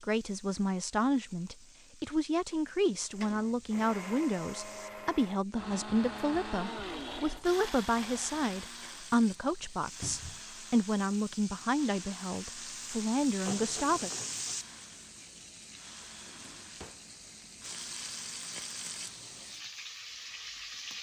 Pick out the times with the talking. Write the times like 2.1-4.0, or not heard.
0.0-14.1.